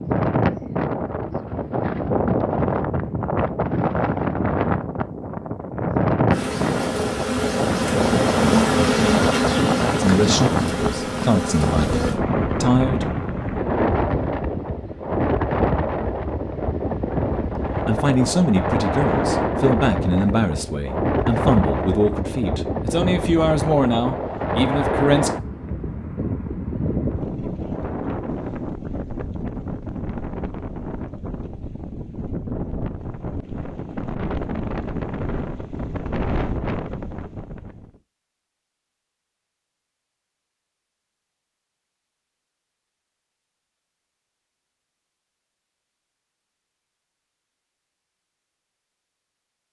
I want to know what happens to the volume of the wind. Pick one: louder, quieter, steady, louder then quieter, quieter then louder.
quieter.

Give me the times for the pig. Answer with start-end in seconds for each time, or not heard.
not heard.